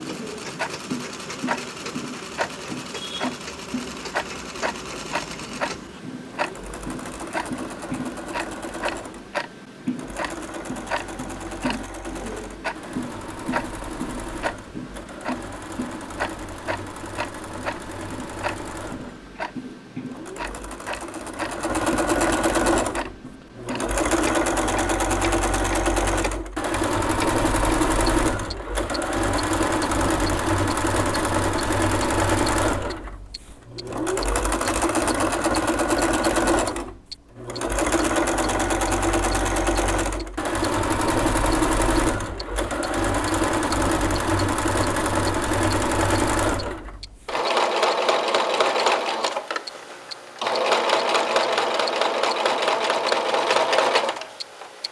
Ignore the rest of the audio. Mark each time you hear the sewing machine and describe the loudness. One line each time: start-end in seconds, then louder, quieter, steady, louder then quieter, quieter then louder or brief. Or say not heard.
0.0-54.8 louder.